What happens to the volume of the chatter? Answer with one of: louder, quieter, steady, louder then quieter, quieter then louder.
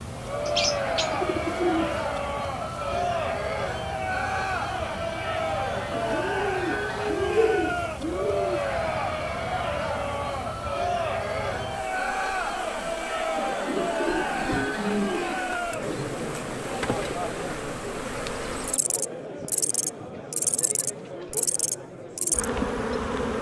quieter.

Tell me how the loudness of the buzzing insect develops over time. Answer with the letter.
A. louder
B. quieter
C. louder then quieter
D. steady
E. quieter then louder
A.